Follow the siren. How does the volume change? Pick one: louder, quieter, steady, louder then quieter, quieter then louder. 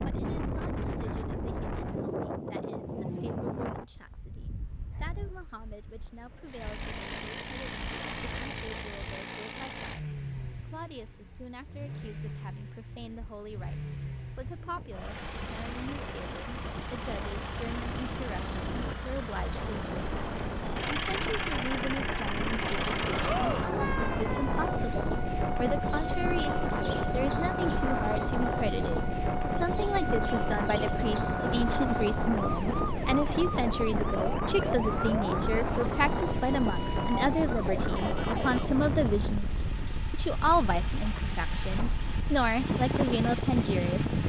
steady.